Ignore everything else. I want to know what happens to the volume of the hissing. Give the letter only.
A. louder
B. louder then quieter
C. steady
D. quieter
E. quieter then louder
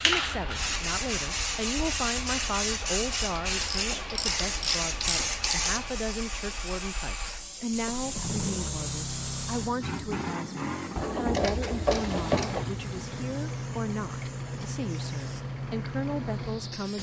D.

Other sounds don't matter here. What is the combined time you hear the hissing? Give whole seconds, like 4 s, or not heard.
17 s.